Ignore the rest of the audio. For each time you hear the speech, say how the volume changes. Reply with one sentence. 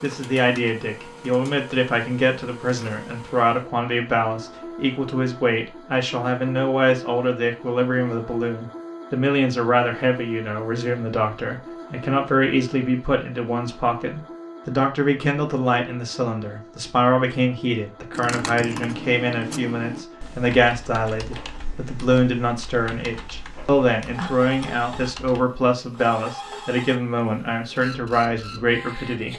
The speech can be heard from 0.0 to 29.3 s, at a steady volume.